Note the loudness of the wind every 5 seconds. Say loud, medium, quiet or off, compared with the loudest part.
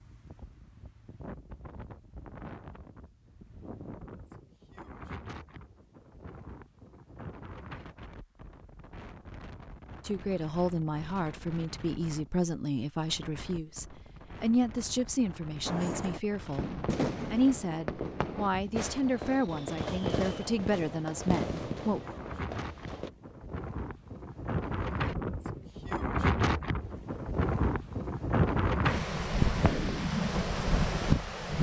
quiet, quiet, quiet, quiet, medium, loud, loud.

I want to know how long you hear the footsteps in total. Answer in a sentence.
The footsteps can't be heard in this clip.